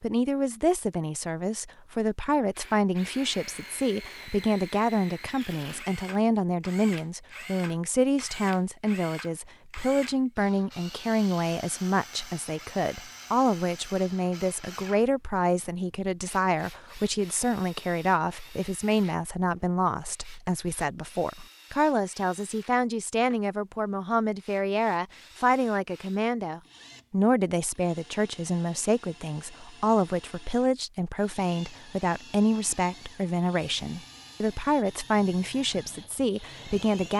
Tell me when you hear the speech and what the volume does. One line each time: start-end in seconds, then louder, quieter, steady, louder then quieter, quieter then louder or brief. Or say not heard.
0.0-37.1 steady.